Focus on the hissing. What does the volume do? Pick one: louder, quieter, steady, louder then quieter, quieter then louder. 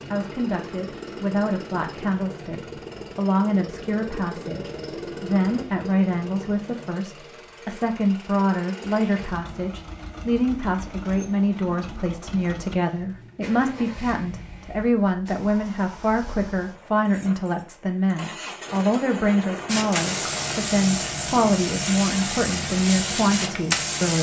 steady.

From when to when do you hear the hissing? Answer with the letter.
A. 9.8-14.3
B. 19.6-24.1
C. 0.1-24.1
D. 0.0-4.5
B.